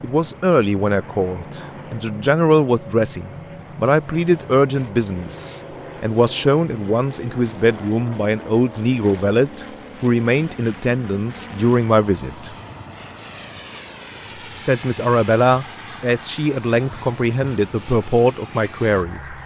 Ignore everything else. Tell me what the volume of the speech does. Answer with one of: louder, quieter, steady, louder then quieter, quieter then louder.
steady.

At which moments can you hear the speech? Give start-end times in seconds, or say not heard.
0.0-12.6, 14.6-19.4.